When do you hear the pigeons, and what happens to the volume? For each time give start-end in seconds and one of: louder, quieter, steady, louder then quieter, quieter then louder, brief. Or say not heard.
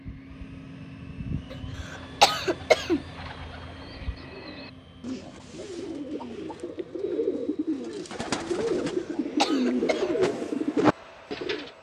1.8-11.7 louder.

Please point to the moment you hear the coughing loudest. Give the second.
2 s.